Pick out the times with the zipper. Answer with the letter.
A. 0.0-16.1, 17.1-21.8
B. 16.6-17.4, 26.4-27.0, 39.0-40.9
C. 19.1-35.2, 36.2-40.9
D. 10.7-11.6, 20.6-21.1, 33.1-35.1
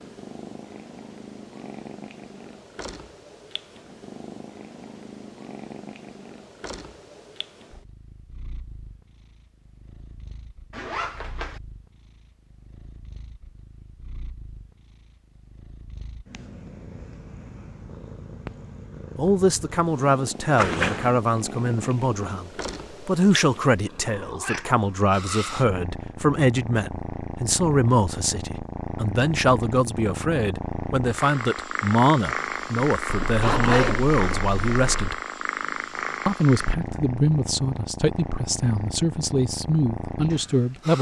D.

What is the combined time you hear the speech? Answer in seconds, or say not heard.
21 s.